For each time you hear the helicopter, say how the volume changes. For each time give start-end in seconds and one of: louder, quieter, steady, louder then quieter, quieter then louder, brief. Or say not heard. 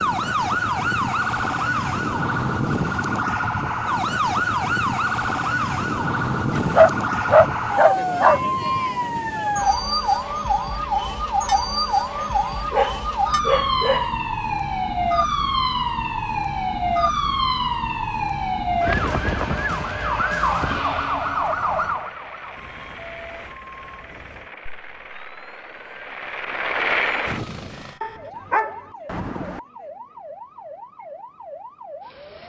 21.4-28.0 louder.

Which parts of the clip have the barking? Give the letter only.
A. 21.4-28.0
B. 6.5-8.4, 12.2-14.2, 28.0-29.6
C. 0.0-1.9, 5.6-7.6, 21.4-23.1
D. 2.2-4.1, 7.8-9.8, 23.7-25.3
B.